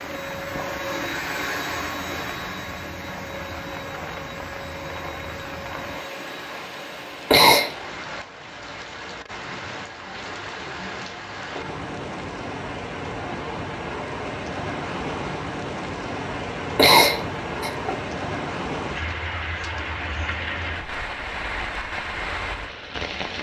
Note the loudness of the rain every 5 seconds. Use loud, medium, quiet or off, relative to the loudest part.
medium, medium, loud, loud, loud.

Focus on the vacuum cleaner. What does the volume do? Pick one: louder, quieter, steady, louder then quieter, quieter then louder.
quieter.